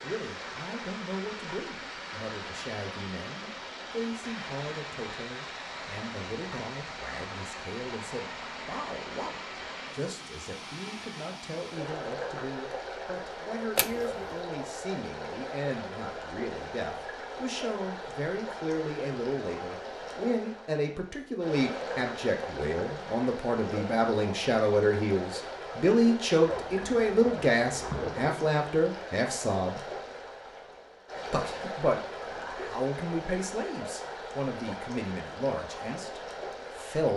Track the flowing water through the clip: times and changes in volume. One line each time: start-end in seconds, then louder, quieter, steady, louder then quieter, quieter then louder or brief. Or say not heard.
0.0-37.1 steady.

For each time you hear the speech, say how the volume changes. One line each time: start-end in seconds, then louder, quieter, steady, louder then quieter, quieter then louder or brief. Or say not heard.
0.0-29.9 louder
31.3-37.1 quieter.